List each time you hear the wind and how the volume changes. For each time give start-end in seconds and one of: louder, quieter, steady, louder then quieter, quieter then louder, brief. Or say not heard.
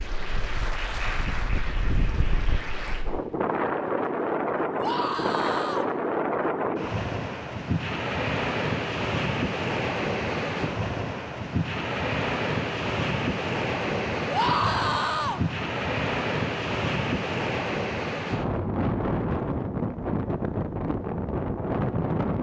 0.0-22.3 steady.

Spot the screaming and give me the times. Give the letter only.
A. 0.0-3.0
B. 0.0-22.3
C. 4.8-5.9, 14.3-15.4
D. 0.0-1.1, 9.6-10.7
C.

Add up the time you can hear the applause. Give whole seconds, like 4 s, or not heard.
3 s.